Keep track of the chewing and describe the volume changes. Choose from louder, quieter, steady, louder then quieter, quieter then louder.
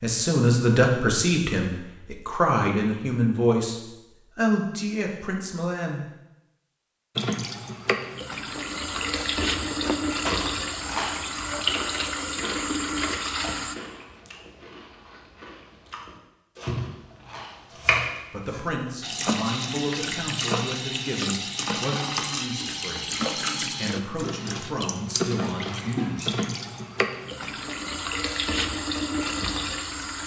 quieter.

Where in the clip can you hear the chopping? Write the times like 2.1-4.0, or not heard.
16.6-18.7.